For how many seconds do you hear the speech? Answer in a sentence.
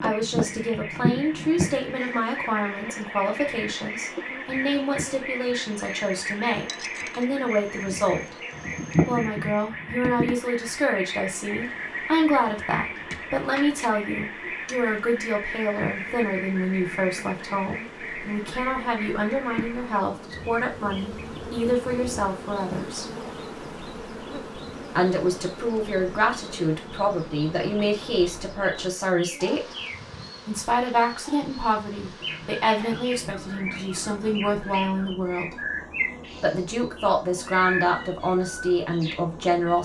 The speech can be heard for 36 seconds in total.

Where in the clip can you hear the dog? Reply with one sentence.
You can't hear the dog here.